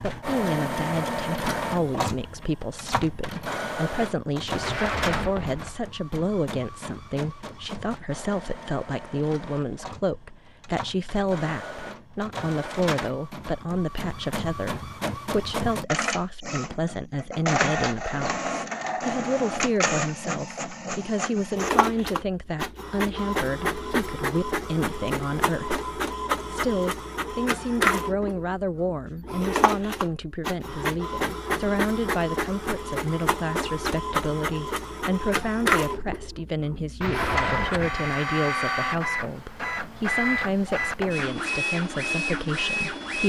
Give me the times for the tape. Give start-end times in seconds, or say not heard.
4.6-5.8, 37.0-38.1.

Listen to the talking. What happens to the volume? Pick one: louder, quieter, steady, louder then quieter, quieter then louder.
steady.